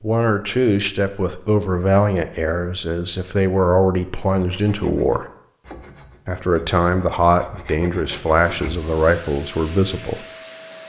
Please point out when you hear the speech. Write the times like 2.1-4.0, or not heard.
0.0-5.2, 6.2-10.2.